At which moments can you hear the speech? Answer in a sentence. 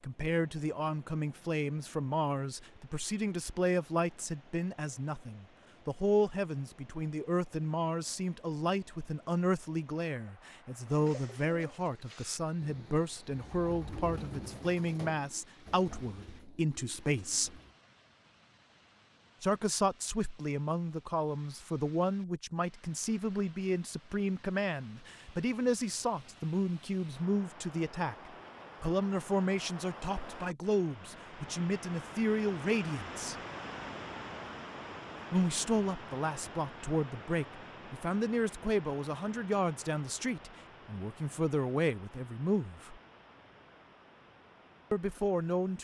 You can hear the speech from 0.0 to 17.6 s, from 19.4 to 33.4 s, from 35.3 to 43.0 s and from 44.9 to 45.7 s.